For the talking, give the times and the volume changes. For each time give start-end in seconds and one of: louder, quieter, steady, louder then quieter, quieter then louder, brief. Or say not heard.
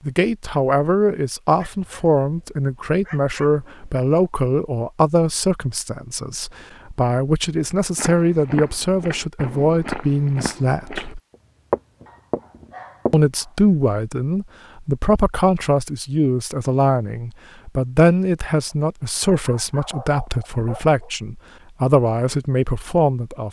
0.1-11.2 steady
13.1-23.4 steady.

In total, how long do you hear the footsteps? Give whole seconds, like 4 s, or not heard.
5 s.